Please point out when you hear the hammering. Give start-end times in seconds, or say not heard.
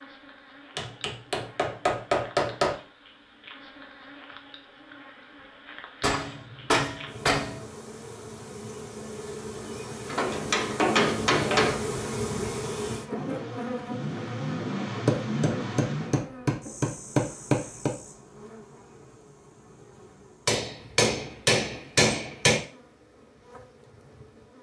0.8-2.8, 6.0-7.7, 10.1-11.8, 15.1-17.9, 20.4-22.6.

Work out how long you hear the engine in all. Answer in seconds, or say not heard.
3 s.